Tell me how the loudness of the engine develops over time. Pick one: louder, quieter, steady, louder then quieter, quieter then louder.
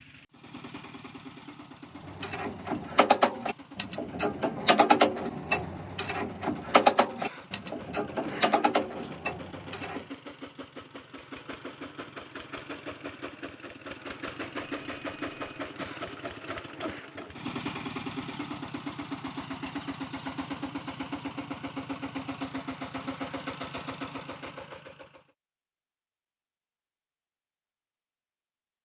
louder.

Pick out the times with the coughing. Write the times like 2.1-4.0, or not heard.
7.2-9.1, 15.8-17.1.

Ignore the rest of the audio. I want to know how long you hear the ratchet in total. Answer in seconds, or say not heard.
8 s.